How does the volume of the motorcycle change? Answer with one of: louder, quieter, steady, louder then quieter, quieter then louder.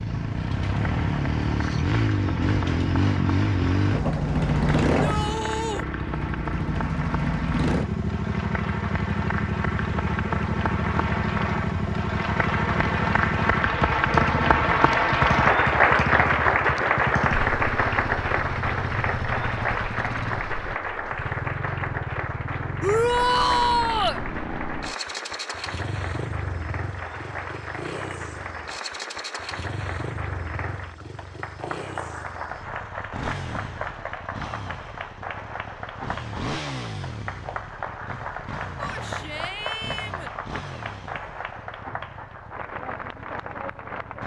quieter.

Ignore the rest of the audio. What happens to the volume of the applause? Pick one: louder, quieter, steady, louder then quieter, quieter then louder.
louder then quieter.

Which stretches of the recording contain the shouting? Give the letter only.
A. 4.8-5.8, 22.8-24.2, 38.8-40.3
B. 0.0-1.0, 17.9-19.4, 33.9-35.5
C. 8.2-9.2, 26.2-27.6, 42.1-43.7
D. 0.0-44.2
A.